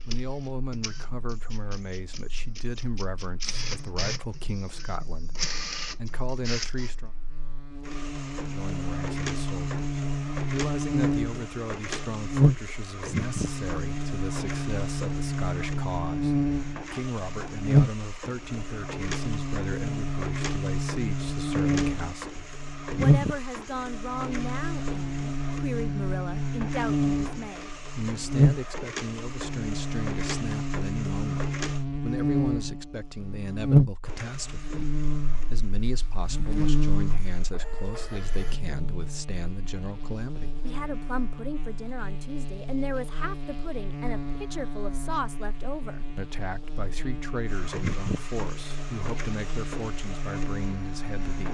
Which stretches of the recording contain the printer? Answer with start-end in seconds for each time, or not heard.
0.0-31.9, 34.0-38.6, 47.5-51.5.